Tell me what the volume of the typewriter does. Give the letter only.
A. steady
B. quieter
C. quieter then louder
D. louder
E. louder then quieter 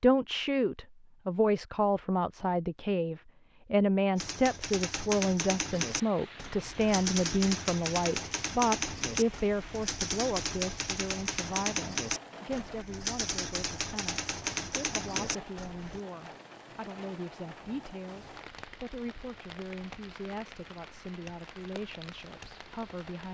A.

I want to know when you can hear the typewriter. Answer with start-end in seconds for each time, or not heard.
4.2-16.0.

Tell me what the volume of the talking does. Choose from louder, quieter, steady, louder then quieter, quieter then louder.
quieter.